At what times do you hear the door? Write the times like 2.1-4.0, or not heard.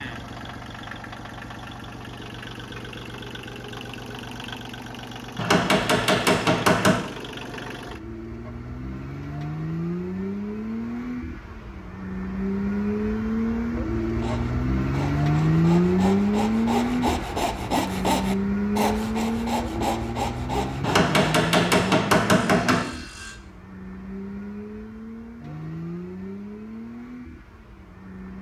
not heard.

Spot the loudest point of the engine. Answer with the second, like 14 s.
16 s.